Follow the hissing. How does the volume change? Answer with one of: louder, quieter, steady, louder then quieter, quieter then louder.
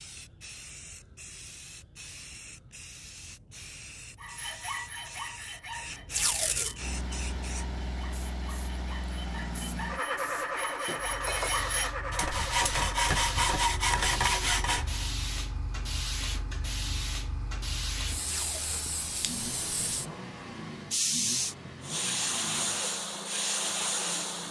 louder.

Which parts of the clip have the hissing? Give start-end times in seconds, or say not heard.
0.0-24.4.